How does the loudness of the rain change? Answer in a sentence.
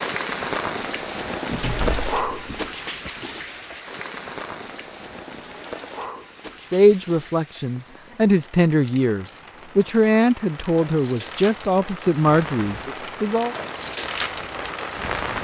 The loudness of the rain goes down, then up.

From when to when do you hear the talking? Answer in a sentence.
You can hear the talking from 6.7 to 13.6 s.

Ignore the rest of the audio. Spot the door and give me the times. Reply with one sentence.
The door can be heard from 1.5 to 2.7 s.